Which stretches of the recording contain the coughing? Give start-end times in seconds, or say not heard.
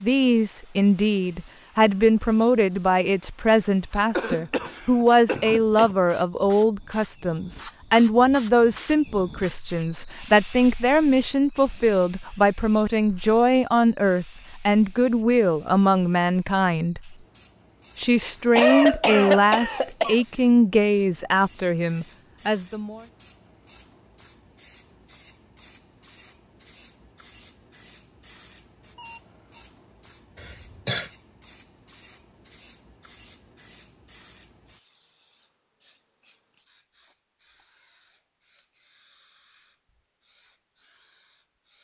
4.2-6.0, 18.6-20.2, 30.4-31.1.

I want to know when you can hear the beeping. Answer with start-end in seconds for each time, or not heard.
28.9-29.6.